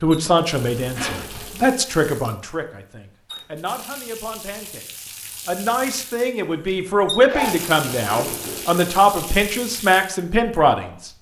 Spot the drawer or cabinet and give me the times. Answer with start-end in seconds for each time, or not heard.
not heard.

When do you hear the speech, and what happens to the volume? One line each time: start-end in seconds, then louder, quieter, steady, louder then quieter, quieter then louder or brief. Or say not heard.
0.0-11.1 quieter then louder.